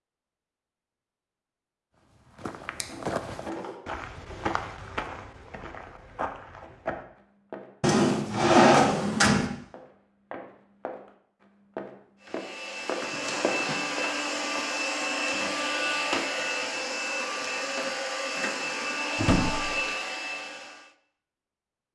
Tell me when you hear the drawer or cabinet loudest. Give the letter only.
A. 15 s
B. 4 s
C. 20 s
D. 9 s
D.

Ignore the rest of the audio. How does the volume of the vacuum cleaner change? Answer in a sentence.
The loudness of the vacuum cleaner stays about the same.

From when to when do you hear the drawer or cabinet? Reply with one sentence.
The drawer or cabinet can be heard from 2.8 to 4.3 s, from 7.8 to 9.5 s and from 19.1 to 19.8 s.